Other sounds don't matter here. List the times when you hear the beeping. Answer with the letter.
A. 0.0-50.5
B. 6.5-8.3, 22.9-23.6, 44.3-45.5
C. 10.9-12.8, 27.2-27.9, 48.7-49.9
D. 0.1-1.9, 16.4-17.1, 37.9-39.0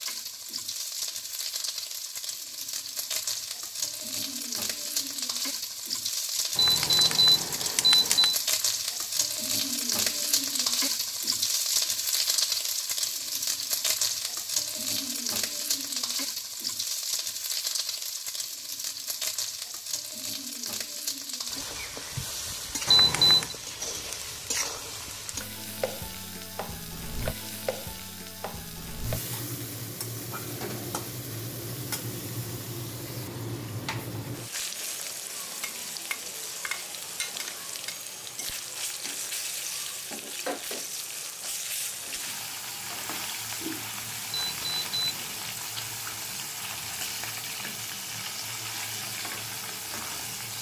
B.